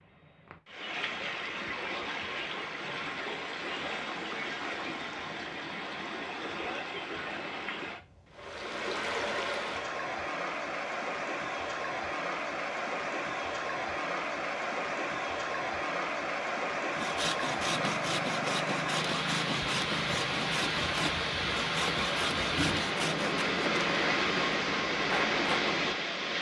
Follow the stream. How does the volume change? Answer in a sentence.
The volume of the stream goes up.